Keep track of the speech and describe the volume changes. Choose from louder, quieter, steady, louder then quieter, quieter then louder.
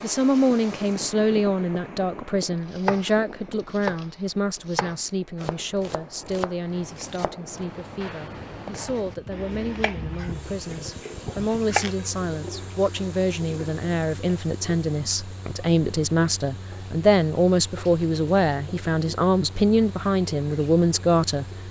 quieter then louder.